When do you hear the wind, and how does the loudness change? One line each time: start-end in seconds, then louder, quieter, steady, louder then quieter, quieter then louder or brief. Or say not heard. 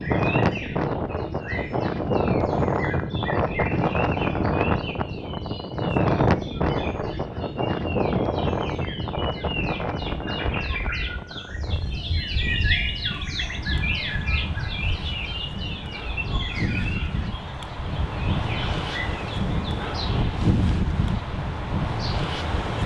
0.0-22.8 quieter then louder.